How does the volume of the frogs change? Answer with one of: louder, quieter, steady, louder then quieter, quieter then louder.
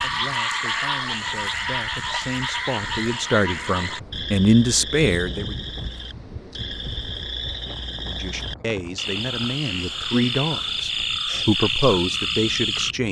quieter then louder.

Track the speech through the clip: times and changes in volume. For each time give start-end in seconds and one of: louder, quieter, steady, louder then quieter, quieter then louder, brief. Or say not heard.
0.0-5.5 louder
8.1-13.0 louder.